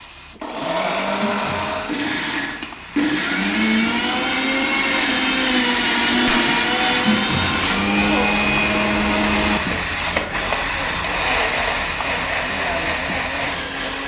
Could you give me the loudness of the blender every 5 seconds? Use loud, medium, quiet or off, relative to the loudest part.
loud, loud, medium.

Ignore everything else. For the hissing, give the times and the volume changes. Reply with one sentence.
The hissing can be heard from 0.0 to 14.0 s, getting louder.